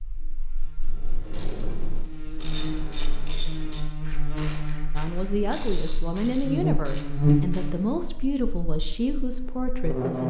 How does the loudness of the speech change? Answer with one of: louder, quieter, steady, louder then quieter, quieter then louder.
steady.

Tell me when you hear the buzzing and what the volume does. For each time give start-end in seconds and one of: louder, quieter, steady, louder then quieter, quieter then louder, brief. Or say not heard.
0.0-10.2 louder then quieter.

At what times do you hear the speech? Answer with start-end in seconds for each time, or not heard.
5.0-10.2.